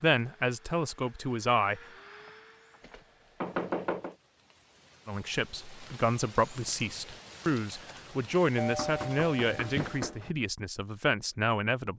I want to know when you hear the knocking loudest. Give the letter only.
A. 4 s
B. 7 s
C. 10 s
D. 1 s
A.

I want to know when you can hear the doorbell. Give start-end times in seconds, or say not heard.
8.6-10.3.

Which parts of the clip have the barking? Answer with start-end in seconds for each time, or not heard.
not heard.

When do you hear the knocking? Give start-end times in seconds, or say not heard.
2.8-4.2, 8.8-10.2.